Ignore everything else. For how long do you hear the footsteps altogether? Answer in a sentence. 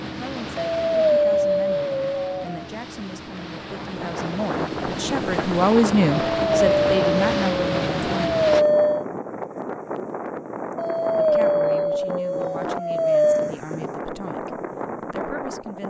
The footsteps can't be heard in this clip.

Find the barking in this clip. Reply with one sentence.
You can hear the barking from 0.6 to 2.6 s, from 6.1 to 9.1 s and from 10.8 to 13.6 s.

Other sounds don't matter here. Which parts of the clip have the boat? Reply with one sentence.
You can hear the boat from 0.0 to 8.7 s.